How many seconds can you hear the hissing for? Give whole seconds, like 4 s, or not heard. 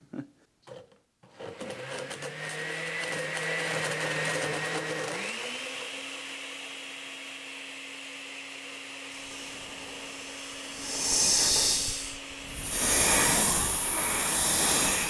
6 s.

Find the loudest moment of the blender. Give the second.
4 s.